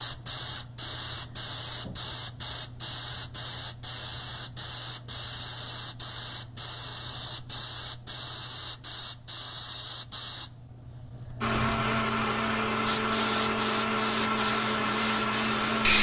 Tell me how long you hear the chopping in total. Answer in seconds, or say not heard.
not heard.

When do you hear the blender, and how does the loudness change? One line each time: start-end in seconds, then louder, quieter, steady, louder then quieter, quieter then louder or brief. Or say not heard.
11.4-15.9 steady.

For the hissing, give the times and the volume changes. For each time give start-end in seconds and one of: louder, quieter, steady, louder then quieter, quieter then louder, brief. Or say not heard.
0.0-15.9 steady.